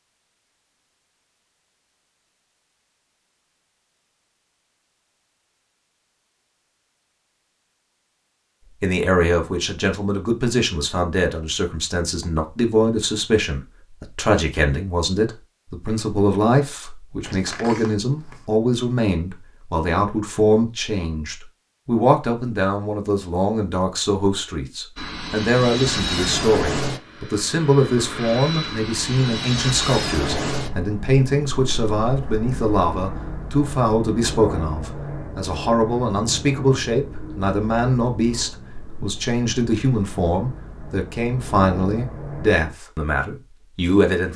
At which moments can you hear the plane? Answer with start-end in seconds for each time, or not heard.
24.9-42.8.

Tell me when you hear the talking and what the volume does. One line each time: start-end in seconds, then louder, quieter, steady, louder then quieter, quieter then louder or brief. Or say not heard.
8.8-44.3 steady.